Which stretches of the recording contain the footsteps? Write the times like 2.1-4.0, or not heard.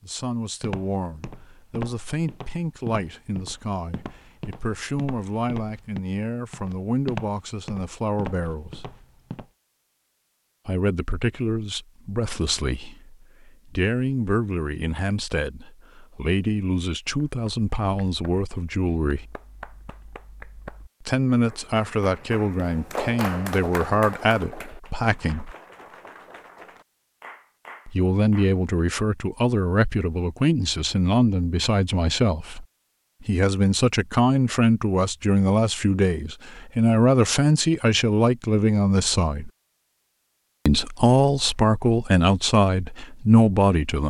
0.6-9.5.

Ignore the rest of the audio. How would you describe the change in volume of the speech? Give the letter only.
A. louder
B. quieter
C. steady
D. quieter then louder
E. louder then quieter
A.